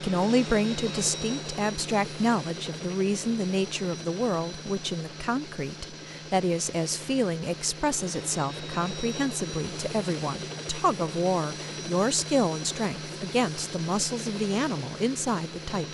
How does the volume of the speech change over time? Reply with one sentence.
The volume of the speech stays about the same.